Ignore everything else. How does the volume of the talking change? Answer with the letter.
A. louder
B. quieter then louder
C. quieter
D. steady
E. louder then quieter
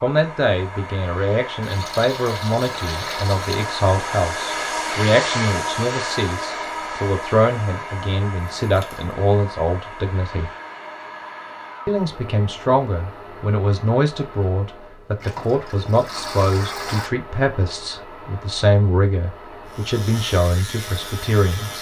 D.